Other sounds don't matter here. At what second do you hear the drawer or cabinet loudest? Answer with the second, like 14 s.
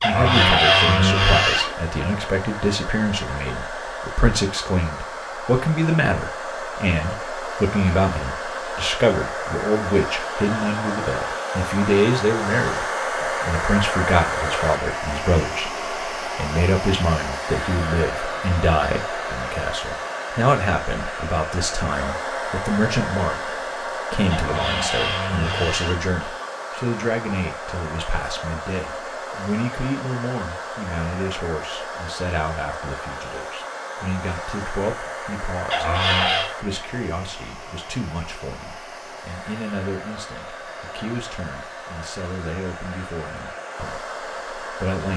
1 s.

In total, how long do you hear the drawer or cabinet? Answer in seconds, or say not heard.
4 s.